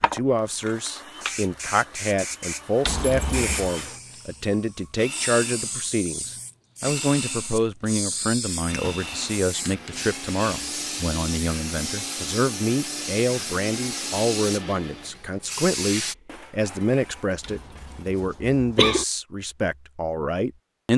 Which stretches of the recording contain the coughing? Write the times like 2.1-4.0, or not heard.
2.8-3.7, 17.4-19.1.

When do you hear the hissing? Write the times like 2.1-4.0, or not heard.
0.0-16.1.